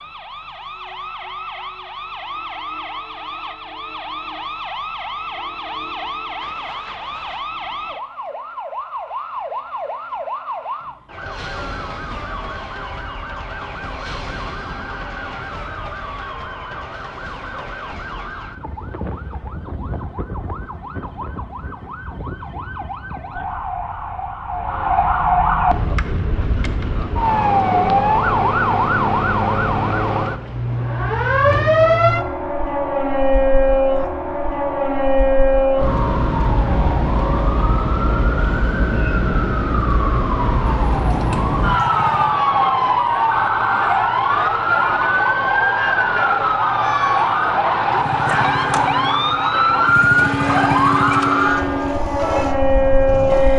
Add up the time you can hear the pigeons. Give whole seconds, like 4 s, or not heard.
not heard.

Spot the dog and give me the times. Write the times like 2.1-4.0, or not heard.
not heard.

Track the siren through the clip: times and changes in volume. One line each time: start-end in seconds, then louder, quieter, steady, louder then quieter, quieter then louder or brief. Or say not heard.
0.0-53.5 louder.